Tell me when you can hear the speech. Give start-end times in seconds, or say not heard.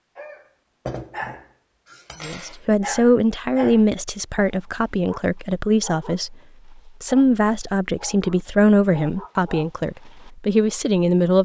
2.2-11.4.